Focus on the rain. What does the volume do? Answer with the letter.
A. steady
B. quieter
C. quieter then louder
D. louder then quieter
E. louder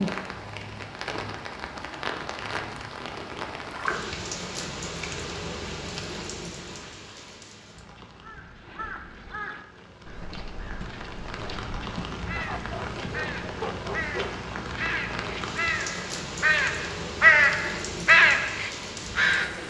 C.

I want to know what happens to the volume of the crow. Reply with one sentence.
The loudness of the crow goes up.